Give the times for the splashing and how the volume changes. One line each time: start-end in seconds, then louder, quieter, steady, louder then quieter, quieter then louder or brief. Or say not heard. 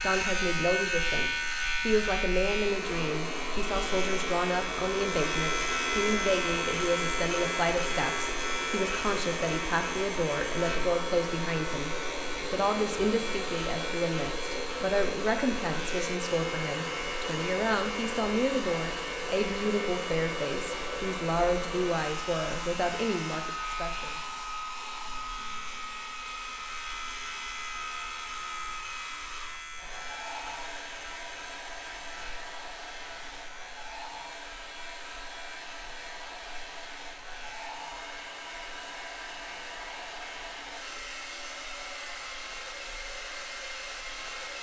not heard.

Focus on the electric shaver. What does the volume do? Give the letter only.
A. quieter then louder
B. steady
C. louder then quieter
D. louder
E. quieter
E.